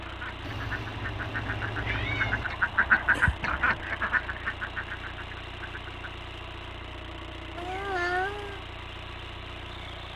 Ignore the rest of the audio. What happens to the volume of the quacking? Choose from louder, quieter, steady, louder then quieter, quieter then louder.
louder then quieter.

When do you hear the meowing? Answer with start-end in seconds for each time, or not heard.
0.4-2.5, 7.5-8.6.